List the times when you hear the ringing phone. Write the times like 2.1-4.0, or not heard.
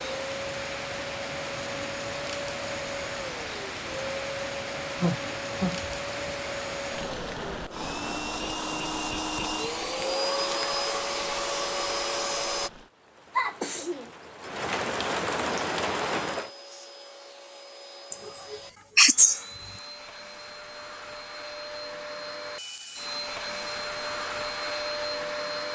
not heard.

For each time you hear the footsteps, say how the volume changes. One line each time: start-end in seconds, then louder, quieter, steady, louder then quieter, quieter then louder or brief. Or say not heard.
not heard.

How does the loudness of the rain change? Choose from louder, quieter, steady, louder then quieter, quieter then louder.
quieter then louder.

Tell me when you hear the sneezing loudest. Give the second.
19 s.